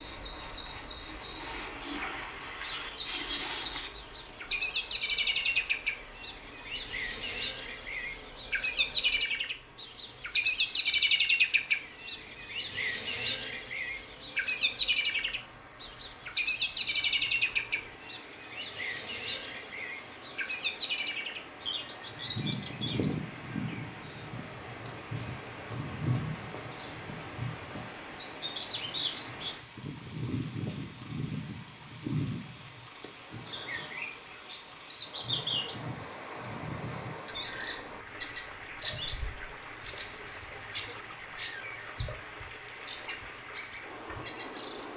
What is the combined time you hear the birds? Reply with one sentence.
You can hear the birds for 45 seconds altogether.